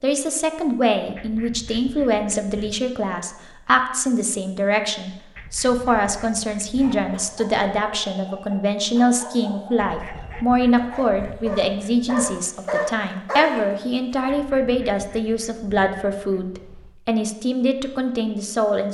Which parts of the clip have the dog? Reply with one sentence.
The dog can be heard from 6.8 to 14.3 s.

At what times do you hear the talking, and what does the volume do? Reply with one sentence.
The talking can be heard from 0.0 to 18.8 s, at a steady volume.